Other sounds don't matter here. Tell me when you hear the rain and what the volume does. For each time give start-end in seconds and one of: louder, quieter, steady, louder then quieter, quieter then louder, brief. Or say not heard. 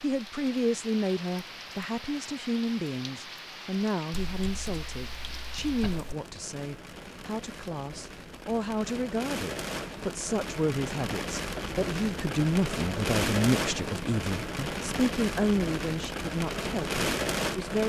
0.0-17.8 louder.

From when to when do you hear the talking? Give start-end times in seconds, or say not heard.
0.0-17.8.